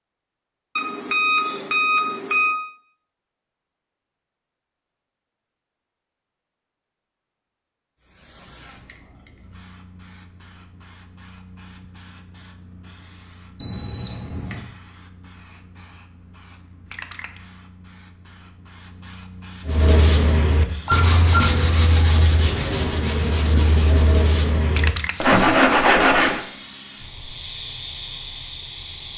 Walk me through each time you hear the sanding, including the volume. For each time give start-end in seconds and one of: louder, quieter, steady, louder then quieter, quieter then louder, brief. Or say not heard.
19.6-26.4 louder.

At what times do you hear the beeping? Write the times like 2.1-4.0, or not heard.
0.8-2.5, 13.6-14.6, 20.9-21.6.